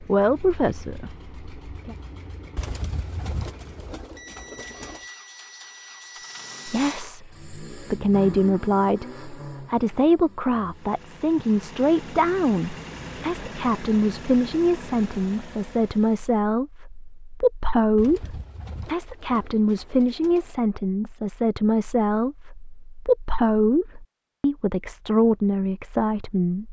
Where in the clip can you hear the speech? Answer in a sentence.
You can hear the speech from 0.0 to 1.9 s and from 6.7 to 26.6 s.